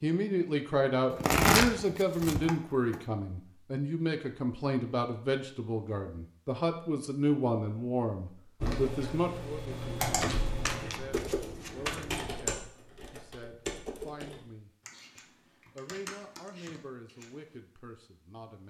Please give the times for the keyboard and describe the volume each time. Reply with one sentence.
The keyboard can be heard from 8.6 to 17.6 s, getting quieter.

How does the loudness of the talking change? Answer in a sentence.
The volume of the talking goes down.